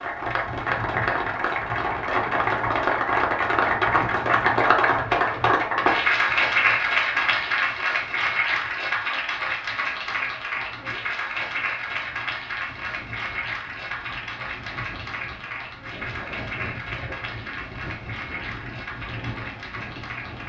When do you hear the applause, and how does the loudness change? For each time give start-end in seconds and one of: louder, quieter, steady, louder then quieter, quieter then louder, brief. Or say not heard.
0.0-20.4 quieter.